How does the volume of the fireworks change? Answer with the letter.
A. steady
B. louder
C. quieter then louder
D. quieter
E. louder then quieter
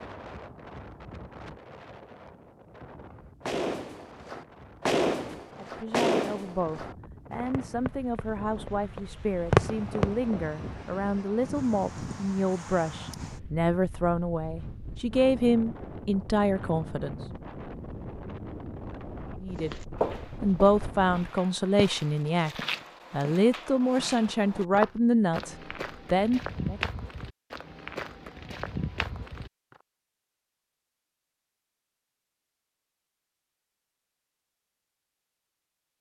C.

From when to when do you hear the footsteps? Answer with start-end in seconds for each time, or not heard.
19.6-29.8.